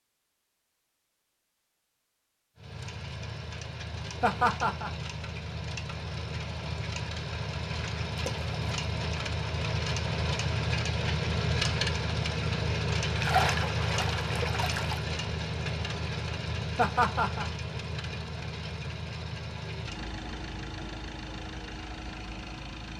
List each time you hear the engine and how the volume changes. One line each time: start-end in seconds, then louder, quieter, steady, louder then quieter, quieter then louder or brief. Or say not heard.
2.5-22.9 louder then quieter.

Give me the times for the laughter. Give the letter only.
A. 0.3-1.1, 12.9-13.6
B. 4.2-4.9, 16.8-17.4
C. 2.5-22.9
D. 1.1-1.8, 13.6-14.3
B.